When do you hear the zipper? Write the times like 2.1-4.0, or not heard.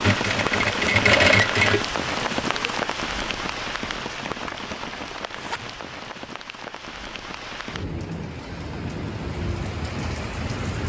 5.0-5.8.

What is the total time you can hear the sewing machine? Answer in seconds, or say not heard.
3 s.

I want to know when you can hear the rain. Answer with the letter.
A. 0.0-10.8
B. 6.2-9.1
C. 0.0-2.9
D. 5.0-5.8
A.